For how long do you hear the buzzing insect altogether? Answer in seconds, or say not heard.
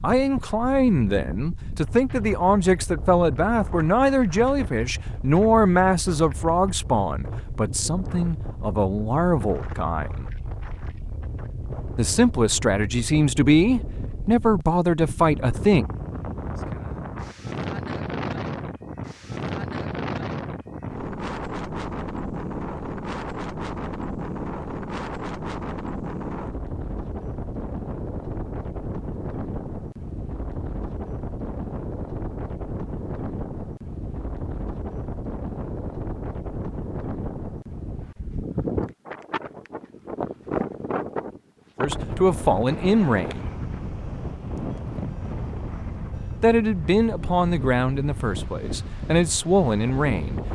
not heard.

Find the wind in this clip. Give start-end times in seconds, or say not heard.
0.0-50.5.